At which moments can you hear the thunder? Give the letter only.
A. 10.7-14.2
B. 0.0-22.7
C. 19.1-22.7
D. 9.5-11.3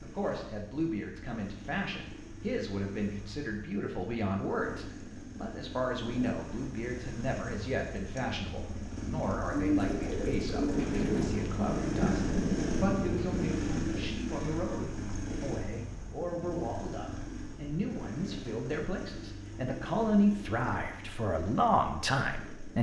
A.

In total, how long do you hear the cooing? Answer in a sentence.
You can hear the cooing for 2 seconds altogether.